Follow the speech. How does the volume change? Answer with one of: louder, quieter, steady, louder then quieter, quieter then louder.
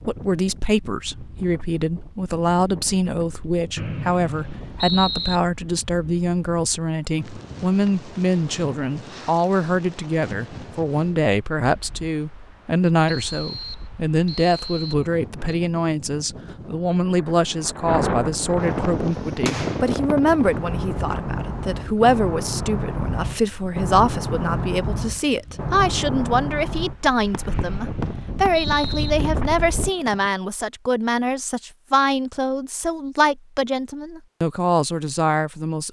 steady.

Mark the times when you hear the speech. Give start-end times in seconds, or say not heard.
0.1-35.8.